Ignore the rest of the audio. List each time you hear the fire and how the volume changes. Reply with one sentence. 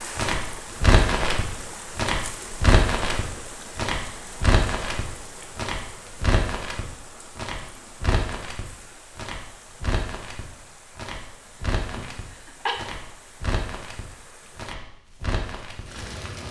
The fire can be heard from 0.0 to 16.4 s, getting quieter.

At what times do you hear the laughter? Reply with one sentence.
You can hear the laughter from 11.9 to 12.8 s.